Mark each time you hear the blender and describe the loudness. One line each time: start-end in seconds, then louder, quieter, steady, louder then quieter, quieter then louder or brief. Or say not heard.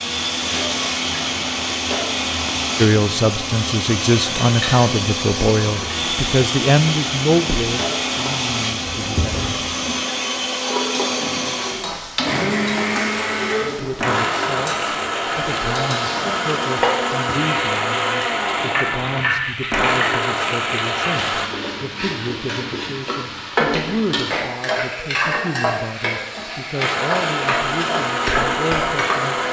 0.0-21.5 steady
26.8-29.4 brief.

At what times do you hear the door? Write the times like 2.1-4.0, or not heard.
8.9-9.6.